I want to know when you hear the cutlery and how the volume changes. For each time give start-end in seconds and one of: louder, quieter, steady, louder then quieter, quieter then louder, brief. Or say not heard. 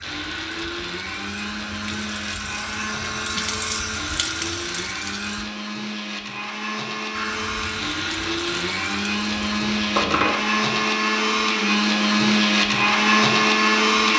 not heard.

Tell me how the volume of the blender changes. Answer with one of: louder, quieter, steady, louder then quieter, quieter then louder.
louder.